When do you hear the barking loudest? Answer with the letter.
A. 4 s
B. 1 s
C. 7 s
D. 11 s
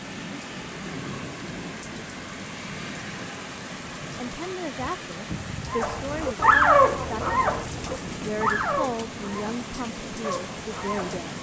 C.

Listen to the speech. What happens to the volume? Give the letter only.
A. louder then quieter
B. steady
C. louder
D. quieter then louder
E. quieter
B.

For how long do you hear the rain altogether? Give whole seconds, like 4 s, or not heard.
11 s.